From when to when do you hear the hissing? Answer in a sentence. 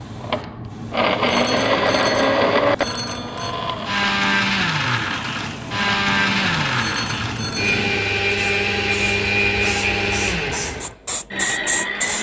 You can hear the hissing from 0.0 to 12.1 s.